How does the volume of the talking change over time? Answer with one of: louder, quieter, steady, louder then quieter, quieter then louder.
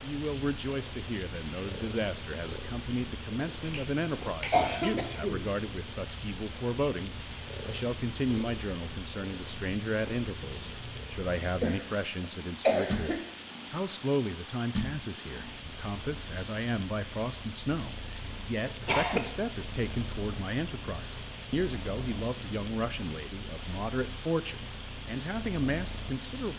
steady.